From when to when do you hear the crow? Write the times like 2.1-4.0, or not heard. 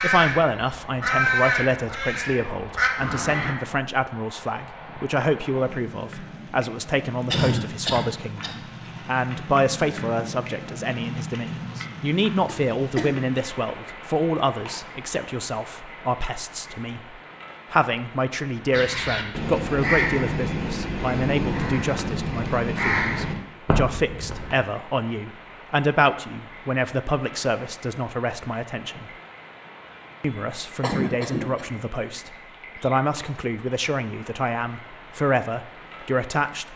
0.0-3.5, 18.7-24.6.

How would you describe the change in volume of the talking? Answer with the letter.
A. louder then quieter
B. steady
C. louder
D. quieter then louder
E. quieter
B.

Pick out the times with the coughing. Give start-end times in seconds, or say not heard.
7.3-8.6, 12.4-13.2, 30.8-32.2.